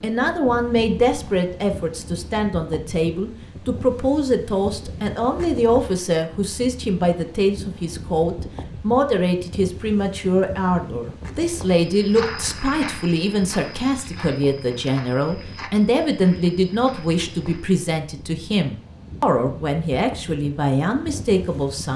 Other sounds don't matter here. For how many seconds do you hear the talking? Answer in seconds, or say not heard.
22 s.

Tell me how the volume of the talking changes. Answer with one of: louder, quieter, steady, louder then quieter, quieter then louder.
steady.